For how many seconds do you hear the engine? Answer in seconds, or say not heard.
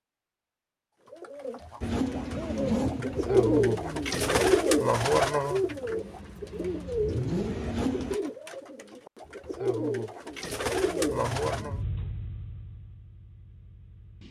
10 s.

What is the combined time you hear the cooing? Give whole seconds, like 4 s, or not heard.
11 s.